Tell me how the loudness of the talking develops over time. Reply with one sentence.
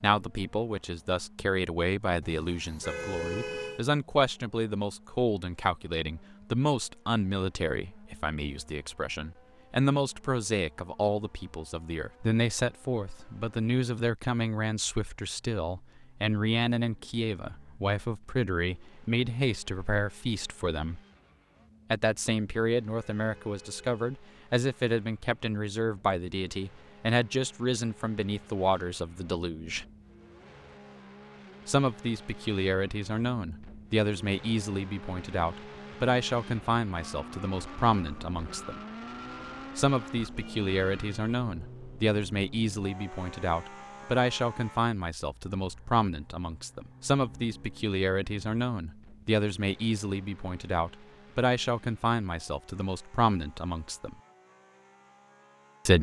The volume of the talking stays about the same.